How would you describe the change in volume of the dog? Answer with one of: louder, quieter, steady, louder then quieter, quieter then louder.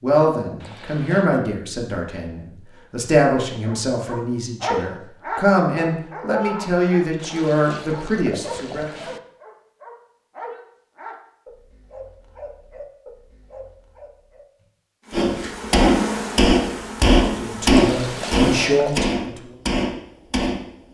quieter.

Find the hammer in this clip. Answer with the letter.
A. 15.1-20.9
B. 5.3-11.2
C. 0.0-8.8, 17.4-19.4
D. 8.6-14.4
A.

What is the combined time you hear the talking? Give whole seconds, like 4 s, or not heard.
11 s.